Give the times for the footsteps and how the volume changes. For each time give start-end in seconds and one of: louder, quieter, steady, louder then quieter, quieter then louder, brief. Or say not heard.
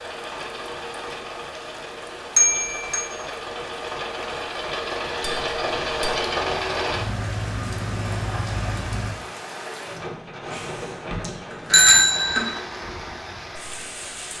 not heard.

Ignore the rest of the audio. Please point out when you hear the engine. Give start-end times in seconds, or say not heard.
0.0-9.2.